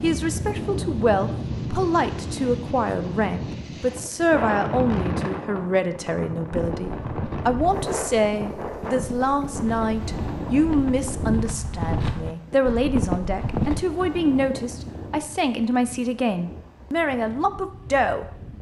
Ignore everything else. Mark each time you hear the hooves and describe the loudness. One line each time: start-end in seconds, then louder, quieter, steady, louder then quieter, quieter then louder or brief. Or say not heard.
6.5-13.8 louder.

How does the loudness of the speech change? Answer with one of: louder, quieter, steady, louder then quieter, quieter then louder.
steady.